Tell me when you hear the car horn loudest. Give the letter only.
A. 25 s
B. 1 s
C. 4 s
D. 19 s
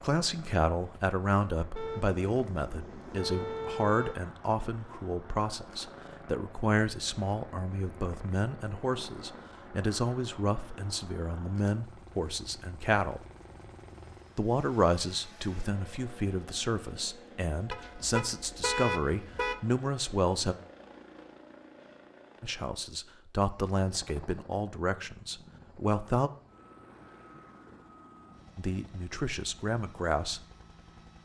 D.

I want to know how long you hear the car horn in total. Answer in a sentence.
You can hear the car horn for 4 seconds altogether.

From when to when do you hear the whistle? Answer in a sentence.
You can't hear the whistle here.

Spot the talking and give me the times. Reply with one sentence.
The talking can be heard from 0.0 to 13.2 s, from 14.3 to 20.6 s, from 22.4 to 26.3 s and from 28.6 to 30.4 s.